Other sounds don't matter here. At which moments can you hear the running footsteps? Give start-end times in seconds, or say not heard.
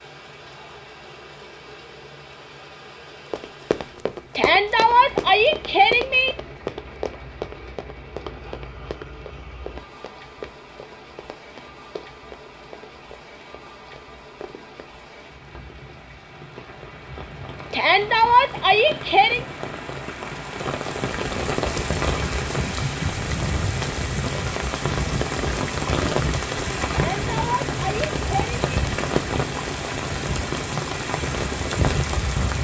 3.3-14.8.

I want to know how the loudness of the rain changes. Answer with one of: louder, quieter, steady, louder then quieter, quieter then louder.
louder.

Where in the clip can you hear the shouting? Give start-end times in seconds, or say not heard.
4.3-6.3, 17.7-19.4, 26.9-28.6.